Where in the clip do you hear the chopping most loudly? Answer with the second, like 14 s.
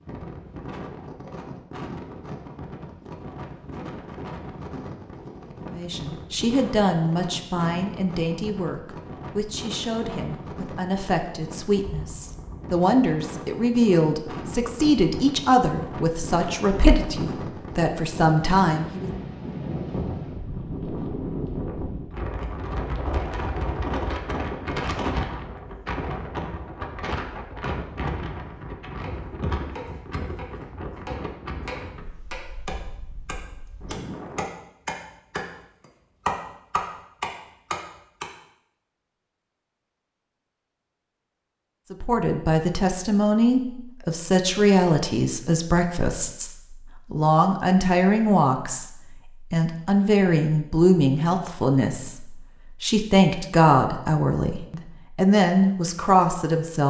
36 s.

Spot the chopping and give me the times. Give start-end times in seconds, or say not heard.
29.0-38.3.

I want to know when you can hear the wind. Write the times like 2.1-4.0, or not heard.
0.0-34.5.